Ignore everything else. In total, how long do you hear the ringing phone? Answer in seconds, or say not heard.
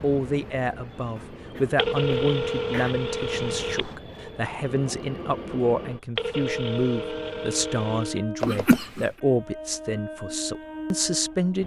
4 s.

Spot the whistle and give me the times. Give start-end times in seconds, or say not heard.
not heard.